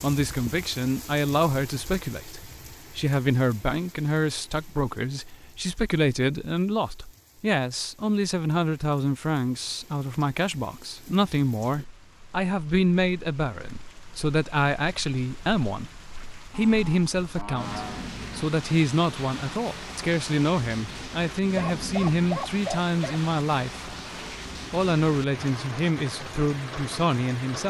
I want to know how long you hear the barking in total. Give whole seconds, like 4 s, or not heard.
2 s.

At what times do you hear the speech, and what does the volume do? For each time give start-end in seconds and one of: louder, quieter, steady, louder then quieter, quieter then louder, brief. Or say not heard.
0.0-23.9 steady
24.7-27.6 brief.